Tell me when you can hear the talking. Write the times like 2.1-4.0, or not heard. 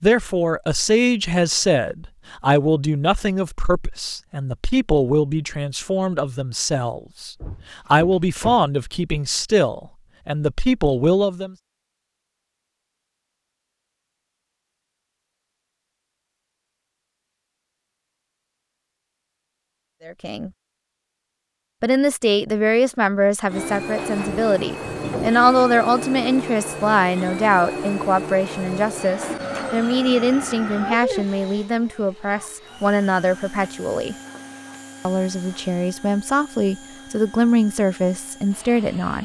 0.0-11.6, 20.1-20.5, 21.8-34.1, 35.0-39.1.